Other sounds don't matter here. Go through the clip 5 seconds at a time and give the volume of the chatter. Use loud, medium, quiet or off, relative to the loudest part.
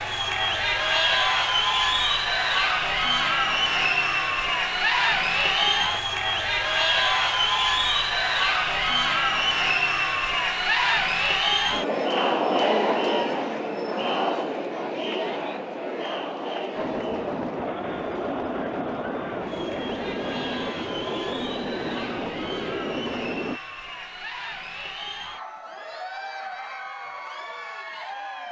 loud, loud, loud, medium, quiet, quiet.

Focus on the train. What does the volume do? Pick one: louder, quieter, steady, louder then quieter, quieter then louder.
steady.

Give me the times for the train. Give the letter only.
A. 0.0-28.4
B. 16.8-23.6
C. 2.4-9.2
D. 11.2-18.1
B.